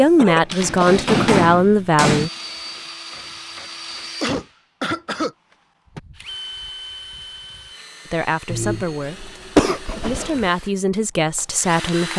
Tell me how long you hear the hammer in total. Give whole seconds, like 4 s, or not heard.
2 s.